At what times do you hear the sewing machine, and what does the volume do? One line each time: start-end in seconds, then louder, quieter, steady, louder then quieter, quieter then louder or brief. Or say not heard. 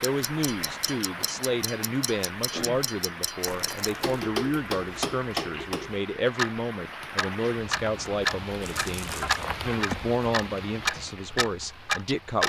not heard.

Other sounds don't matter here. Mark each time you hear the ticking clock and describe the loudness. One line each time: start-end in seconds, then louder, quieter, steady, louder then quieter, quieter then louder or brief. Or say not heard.
0.0-12.4 louder.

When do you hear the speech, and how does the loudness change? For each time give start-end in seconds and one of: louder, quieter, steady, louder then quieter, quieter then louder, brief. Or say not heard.
0.0-12.4 steady.